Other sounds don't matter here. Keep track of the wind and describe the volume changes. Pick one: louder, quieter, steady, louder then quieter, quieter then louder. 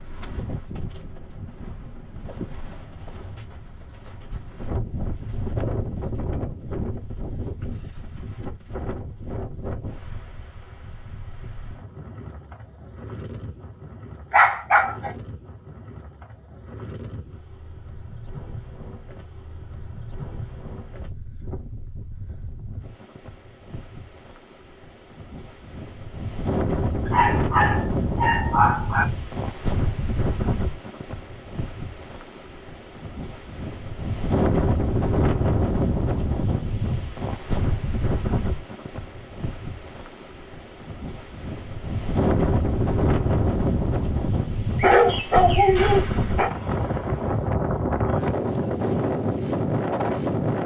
quieter then louder.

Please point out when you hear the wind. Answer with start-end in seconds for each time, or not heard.
0.0-50.6.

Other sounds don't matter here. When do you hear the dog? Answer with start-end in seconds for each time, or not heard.
14.3-15.1, 27.1-29.1, 44.8-46.5.